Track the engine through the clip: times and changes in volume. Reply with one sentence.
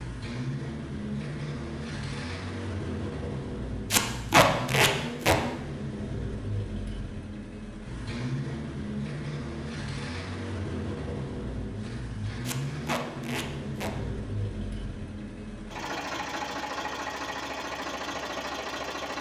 You can hear the engine from 0.0 to 19.1 s, at a steady volume.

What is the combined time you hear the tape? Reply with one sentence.
The tape can be heard for 3 seconds in total.